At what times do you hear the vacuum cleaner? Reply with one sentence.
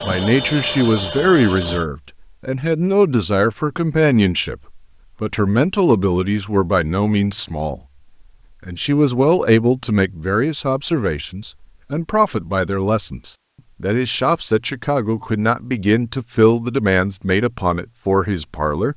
You can hear the vacuum cleaner from 0.0 to 1.9 s.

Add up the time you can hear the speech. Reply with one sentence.
You can hear the speech for 18 seconds altogether.